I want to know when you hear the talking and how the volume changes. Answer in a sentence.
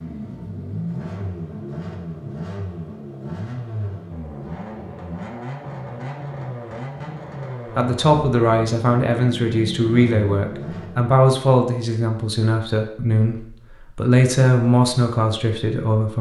You can hear the talking from 7.8 to 16.1 s, at a steady volume.